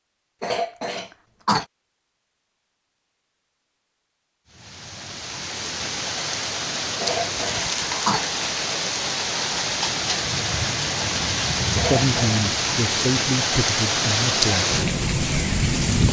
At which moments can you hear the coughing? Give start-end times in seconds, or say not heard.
0.4-1.6, 7.0-8.3, 11.8-12.4.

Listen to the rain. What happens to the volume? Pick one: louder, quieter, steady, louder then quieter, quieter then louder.
louder.